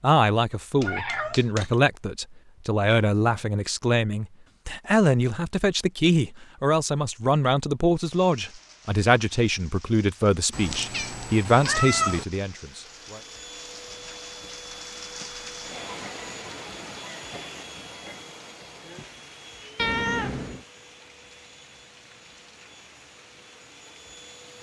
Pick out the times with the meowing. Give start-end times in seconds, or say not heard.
0.8-1.8, 10.5-12.2, 19.8-20.6.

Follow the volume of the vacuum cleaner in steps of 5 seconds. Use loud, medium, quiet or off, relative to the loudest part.
off, off, loud, loud, medium.